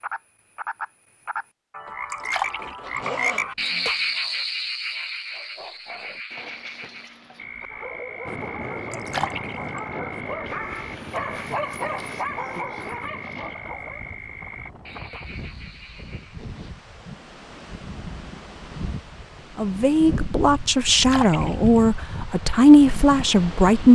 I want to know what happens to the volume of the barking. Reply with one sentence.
The loudness of the barking goes up.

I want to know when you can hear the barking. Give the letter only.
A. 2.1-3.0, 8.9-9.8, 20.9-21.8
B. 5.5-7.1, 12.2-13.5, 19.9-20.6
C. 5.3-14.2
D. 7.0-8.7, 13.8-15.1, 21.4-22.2
C.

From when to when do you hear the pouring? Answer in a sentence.
The pouring can be heard from 2.1 to 3.0 s, from 8.9 to 9.8 s and from 20.9 to 21.8 s.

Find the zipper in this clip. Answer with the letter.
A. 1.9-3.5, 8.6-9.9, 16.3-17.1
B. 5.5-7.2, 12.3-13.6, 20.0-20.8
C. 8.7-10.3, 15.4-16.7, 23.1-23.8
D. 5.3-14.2
A.